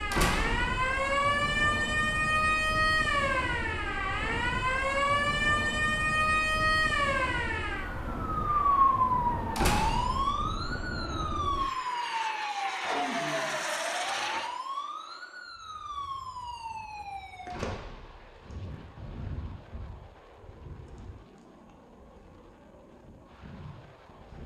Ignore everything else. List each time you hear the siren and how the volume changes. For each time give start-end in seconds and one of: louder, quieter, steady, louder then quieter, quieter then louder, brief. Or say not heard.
0.0-24.4 quieter.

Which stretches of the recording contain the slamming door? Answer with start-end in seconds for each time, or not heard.
0.1-0.8, 9.6-10.3, 17.5-18.4.